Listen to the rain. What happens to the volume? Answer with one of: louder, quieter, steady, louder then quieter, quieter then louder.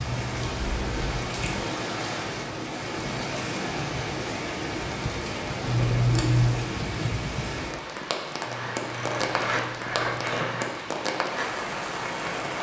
steady.